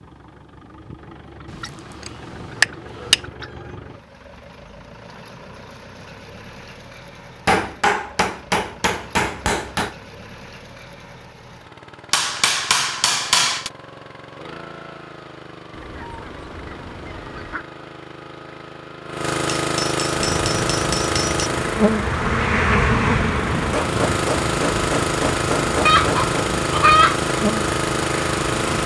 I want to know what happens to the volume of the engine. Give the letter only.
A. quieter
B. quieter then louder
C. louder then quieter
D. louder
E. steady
D.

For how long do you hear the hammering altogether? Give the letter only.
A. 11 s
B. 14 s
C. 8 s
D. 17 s
A.